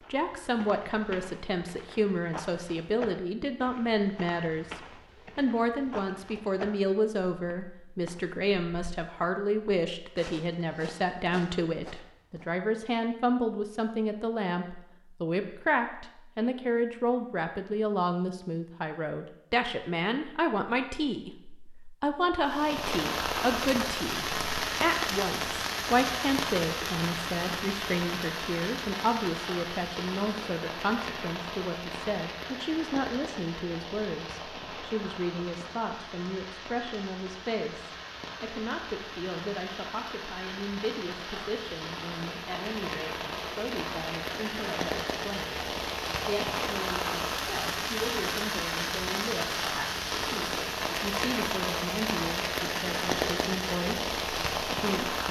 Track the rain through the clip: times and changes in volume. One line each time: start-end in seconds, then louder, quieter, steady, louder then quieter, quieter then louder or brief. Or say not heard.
22.4-55.2 quieter then louder.